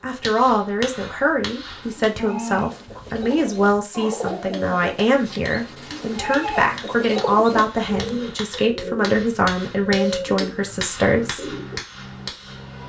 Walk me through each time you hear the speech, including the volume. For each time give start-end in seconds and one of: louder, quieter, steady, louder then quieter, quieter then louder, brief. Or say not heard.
0.0-11.5 steady.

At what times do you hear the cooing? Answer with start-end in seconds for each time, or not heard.
1.6-11.8.